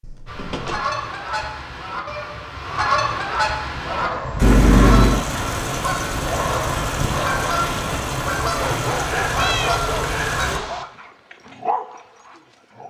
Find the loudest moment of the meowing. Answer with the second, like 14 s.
5 s.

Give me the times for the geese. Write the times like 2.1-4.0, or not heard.
0.2-10.6.